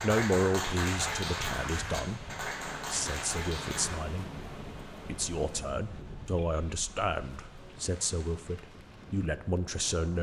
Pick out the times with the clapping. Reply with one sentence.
You can hear the clapping from 0.0 to 4.0 s.